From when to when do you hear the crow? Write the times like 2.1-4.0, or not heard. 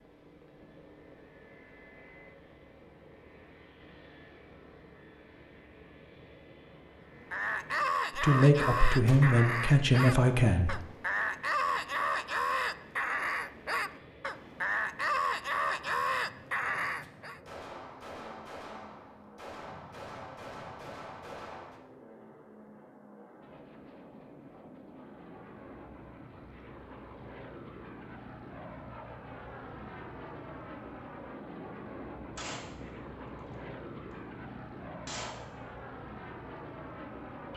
7.3-17.4.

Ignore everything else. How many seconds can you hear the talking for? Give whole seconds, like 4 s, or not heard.
3 s.